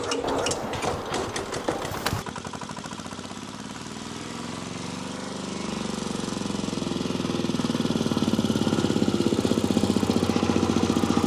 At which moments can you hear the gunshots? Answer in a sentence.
You can hear the gunshots from 0.2 to 2.2 s.